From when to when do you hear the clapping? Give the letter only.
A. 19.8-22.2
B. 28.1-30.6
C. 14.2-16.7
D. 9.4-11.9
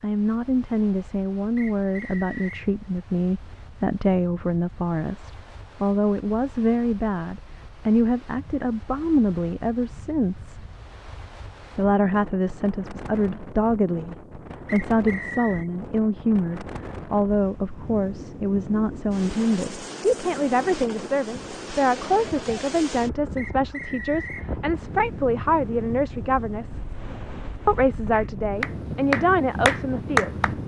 B.